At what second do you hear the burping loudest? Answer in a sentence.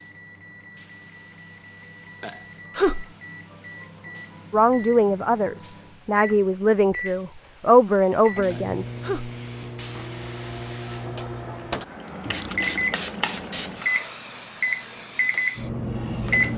The loudest moment of the burping is at 3 seconds.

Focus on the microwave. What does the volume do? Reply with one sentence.
The volume of the microwave goes up.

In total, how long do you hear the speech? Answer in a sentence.
You can hear the speech for 4 seconds altogether.